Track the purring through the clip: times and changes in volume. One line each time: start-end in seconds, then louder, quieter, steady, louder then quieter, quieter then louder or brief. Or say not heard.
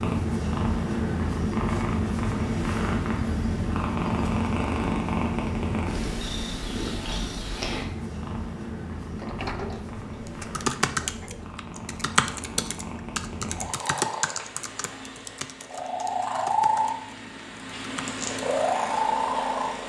0.0-19.8 quieter then louder.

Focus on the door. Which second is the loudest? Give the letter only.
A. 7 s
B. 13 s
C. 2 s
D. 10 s
D.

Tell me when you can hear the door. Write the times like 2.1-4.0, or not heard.
9.1-11.5.